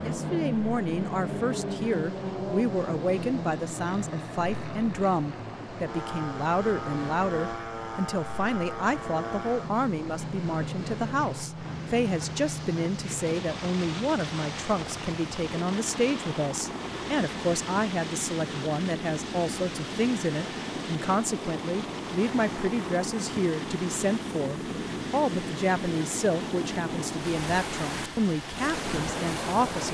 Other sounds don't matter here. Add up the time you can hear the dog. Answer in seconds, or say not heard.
not heard.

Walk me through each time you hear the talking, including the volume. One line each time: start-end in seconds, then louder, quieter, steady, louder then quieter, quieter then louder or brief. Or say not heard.
0.0-29.9 steady.